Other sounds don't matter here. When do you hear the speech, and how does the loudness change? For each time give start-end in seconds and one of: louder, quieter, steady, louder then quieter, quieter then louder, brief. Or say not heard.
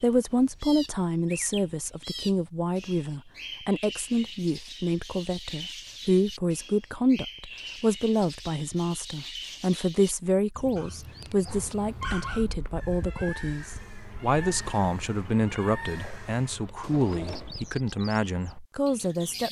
0.0-19.4 steady.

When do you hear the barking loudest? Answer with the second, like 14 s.
12 s.